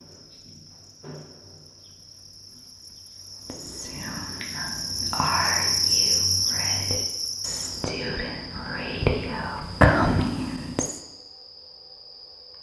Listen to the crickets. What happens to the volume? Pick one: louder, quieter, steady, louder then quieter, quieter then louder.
louder then quieter.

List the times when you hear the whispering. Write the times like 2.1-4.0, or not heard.
3.5-10.9.